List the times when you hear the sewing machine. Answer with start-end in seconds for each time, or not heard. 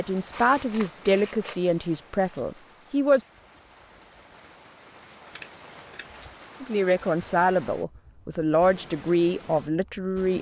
not heard.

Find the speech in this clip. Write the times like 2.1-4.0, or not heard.
0.0-3.2, 6.6-10.3.